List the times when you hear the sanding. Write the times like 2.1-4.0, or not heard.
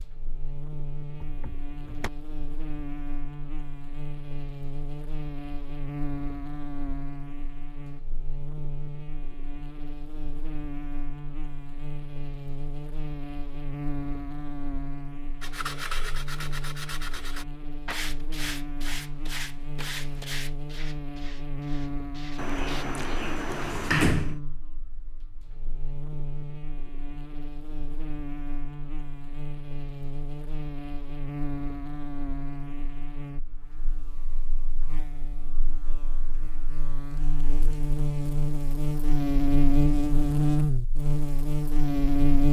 15.4-22.9.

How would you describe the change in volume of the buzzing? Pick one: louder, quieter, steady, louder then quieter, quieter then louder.
louder.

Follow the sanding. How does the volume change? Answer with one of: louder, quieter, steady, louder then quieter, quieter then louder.
quieter.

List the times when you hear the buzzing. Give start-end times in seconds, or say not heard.
0.0-42.4.